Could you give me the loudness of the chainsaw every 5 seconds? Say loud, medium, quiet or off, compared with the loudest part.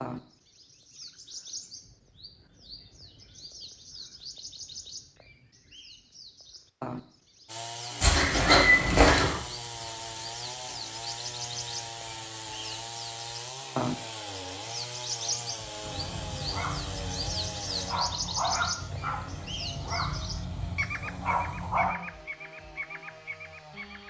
off, loud, loud, loud, medium.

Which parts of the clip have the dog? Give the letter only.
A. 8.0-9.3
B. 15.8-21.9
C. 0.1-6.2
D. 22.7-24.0
B.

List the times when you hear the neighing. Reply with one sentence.
You can hear the neighing from 8.0 to 9.3 s.